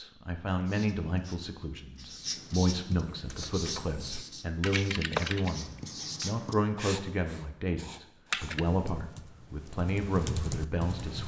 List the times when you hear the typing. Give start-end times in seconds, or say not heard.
3.1-6.3, 8.3-11.2.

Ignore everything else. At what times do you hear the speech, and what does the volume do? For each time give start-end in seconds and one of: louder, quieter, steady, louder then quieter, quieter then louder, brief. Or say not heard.
0.0-11.2 steady.